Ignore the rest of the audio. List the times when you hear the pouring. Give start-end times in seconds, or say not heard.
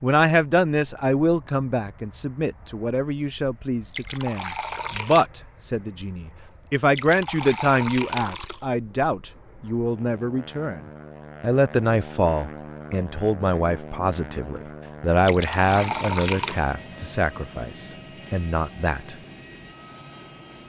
3.9-5.3, 6.9-8.6, 15.2-16.6.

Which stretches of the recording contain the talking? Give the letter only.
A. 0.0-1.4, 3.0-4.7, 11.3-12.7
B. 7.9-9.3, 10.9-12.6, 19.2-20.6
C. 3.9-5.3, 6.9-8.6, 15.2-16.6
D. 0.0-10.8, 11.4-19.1
D.